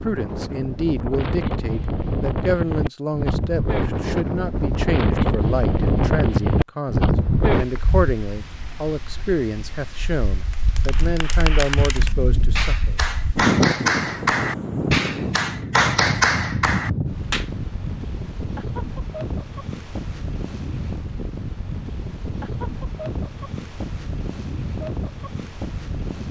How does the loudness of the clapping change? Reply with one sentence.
The loudness of the clapping goes up.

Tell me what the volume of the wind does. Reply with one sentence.
The volume of the wind goes down.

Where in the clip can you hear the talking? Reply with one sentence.
The talking can be heard from 0.0 to 12.9 s.